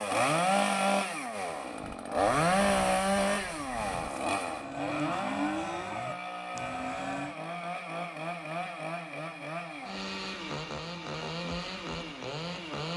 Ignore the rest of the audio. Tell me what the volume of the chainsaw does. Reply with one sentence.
The volume of the chainsaw goes down.